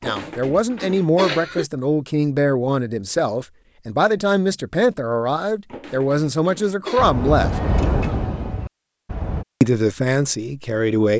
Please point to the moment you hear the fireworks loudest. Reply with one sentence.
The loudest moment of the fireworks is at 8 seconds.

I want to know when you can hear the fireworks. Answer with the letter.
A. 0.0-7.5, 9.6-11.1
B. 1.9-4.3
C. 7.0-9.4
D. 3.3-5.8
C.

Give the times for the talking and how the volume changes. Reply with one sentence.
You can hear the talking from 0.0 to 7.5 s, at a steady volume; and briefly from 9.6 to 11.1 s.